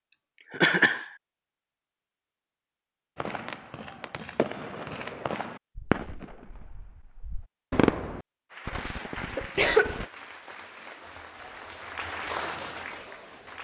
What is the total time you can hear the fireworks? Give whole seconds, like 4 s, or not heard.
7 s.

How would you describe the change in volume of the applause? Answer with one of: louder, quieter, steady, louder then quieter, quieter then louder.
louder.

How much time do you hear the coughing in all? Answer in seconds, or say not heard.
2 s.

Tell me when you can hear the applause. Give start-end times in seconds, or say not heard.
8.5-13.5.